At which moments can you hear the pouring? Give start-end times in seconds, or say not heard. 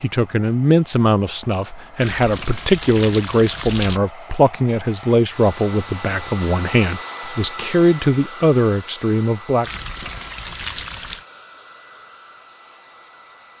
2.0-4.0, 9.6-11.2.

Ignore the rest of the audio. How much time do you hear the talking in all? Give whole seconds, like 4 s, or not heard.
10 s.